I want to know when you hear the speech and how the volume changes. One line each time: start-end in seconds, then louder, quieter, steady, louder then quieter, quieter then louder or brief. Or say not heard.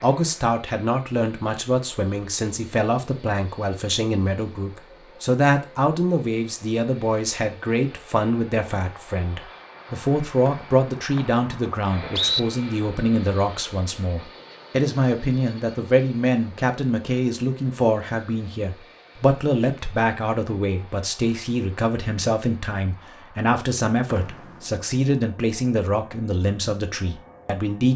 0.0-27.9 steady.